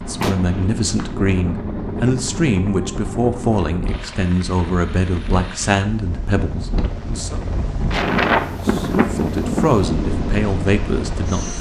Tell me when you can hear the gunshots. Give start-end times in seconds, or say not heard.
0.2-1.1.